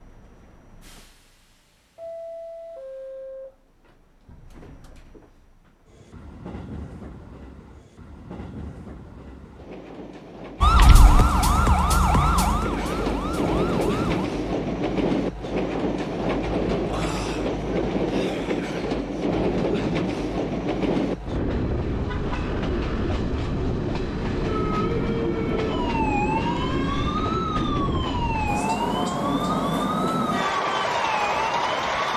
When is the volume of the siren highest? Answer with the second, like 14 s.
11 s.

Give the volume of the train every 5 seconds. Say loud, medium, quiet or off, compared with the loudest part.
quiet, quiet, loud, loud, loud, loud, loud.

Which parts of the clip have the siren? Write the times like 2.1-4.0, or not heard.
10.6-14.3, 24.4-32.1.